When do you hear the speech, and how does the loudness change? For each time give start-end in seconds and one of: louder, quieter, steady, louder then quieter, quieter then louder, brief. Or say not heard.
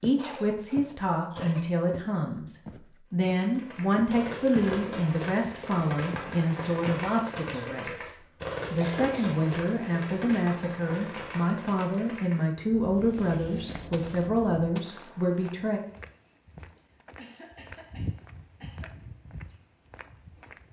0.0-15.8 steady.